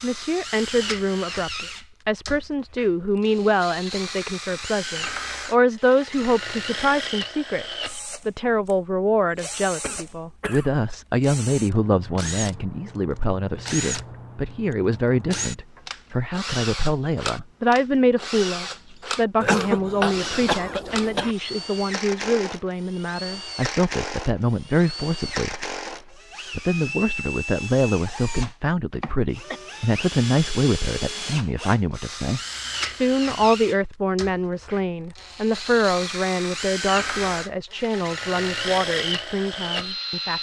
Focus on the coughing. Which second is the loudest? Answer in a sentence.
The volume of the coughing peaks at 20 seconds.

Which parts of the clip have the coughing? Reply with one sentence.
The coughing can be heard from 9.8 to 10.8 s, from 19.4 to 21.4 s and from 28.9 to 29.6 s.